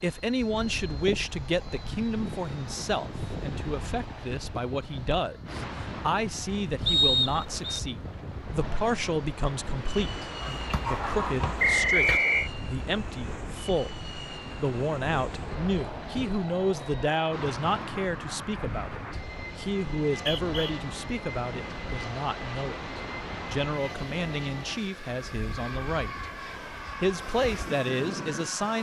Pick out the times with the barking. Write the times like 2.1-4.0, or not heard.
10.4-12.2.